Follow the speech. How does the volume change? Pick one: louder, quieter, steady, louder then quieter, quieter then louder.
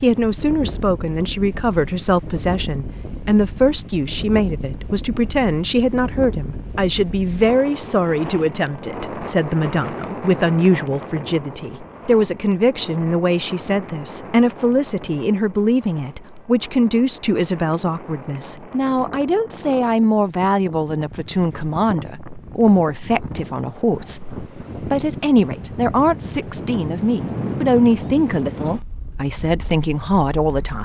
steady.